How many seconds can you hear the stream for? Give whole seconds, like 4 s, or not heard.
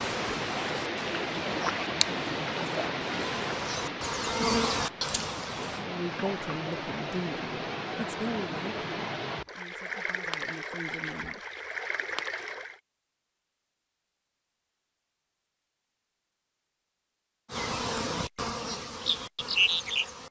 13 s.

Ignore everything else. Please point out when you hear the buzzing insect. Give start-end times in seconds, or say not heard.
0.0-5.8, 17.4-20.2.